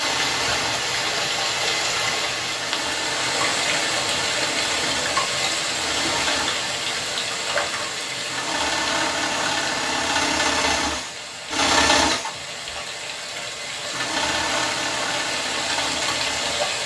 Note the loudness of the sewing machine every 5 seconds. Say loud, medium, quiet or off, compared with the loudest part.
medium, loud, loud, medium.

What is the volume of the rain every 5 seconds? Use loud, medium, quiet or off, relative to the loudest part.
loud, loud, medium, loud.